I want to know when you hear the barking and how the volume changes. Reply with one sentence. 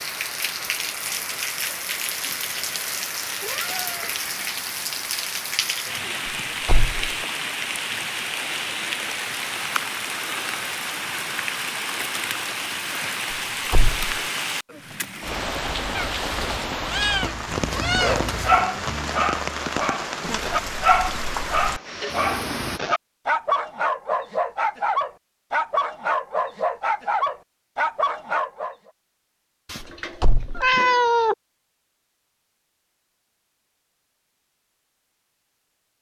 You can hear the barking from 17.9 to 28.8 s, at a steady volume.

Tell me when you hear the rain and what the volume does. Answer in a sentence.
You can hear the rain from 0.0 to 22.8 s, at a steady volume.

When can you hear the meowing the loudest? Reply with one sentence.
The loudest moment of the meowing is at 31 seconds.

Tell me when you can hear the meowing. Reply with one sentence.
You can hear the meowing from 3.4 to 4.2 s, from 15.9 to 18.6 s and from 29.6 to 31.4 s.